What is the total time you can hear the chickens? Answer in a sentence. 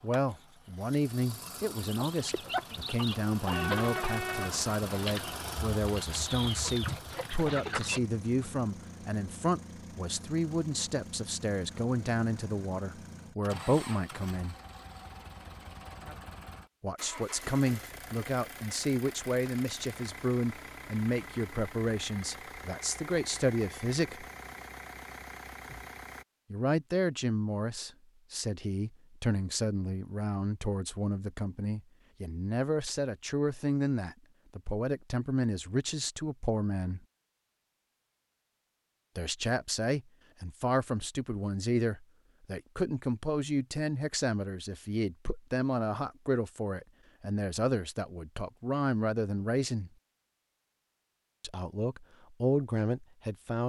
The chickens can be heard for 6 seconds in total.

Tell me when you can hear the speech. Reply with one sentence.
You can hear the speech from 0.0 to 14.6 s, from 16.8 to 24.2 s, from 26.5 to 37.0 s, from 39.1 to 49.9 s and from 51.4 to 53.6 s.